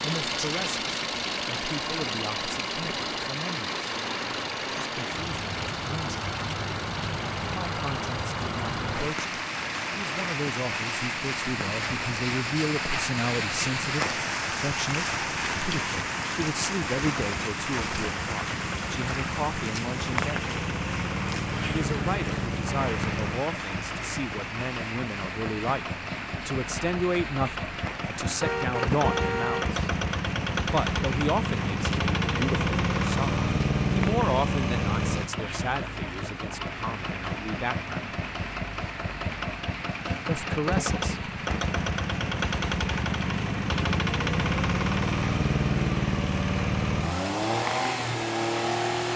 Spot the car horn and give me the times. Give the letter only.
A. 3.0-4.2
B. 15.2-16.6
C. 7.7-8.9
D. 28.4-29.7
D.